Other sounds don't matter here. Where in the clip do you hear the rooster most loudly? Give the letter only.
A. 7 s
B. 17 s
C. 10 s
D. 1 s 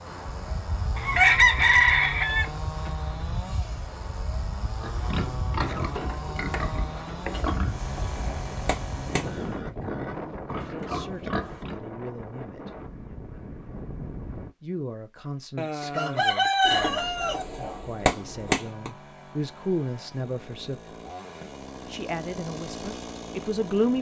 D.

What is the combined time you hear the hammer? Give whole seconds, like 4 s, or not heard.
4 s.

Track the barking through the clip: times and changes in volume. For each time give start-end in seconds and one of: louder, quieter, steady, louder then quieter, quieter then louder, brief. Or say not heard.
not heard.